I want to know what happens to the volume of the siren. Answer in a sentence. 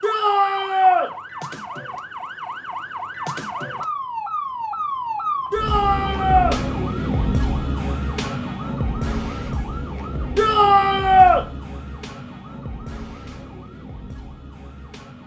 The volume of the siren goes up, then down.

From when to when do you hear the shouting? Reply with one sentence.
The shouting can be heard from 0.0 to 1.1 s, from 5.5 to 6.6 s and from 10.3 to 11.4 s.